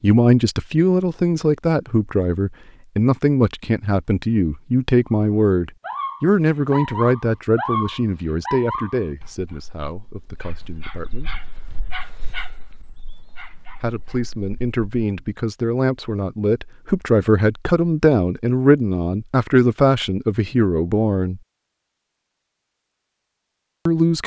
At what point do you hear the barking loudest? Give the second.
8 s.